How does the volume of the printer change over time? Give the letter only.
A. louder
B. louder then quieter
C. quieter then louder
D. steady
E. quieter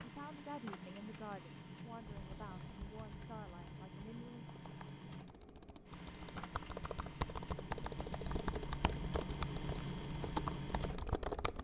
A.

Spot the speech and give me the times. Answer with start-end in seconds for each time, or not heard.
0.0-4.5.